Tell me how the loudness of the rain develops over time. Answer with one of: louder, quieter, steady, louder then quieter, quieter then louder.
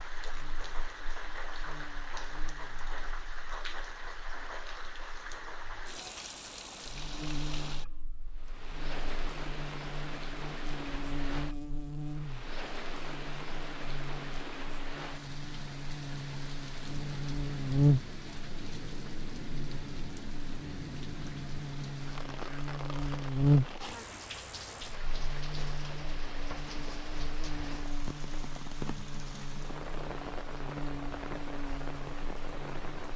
steady.